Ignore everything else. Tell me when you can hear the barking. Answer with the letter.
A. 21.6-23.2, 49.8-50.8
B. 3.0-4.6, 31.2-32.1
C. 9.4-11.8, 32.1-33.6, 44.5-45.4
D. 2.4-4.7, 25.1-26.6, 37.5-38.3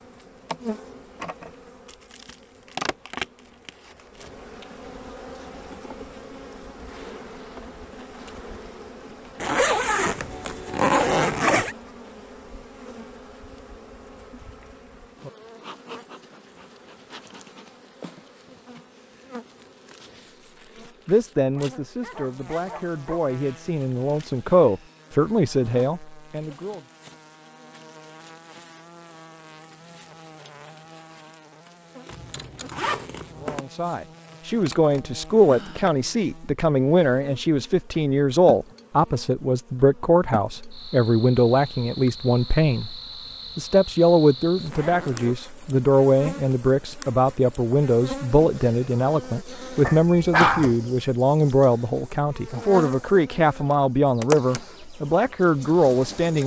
A.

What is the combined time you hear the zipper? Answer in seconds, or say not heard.
5 s.